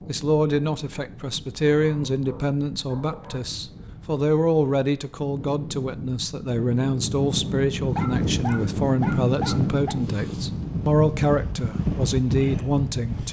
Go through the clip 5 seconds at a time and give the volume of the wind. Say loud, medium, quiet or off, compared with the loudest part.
quiet, loud, loud.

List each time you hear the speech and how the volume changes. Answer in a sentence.
You can hear the speech from 0.1 to 13.2 s, at a steady volume.